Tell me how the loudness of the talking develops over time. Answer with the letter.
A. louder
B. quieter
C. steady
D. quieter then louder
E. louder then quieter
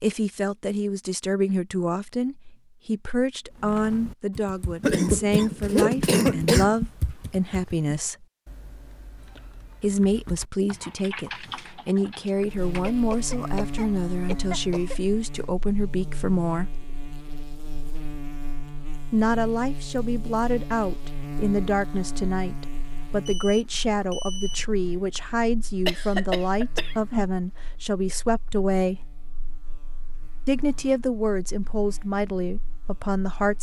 C.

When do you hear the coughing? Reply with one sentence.
The coughing can be heard from 4.8 to 6.8 s, from 12.8 to 15.0 s and from 25.9 to 27.2 s.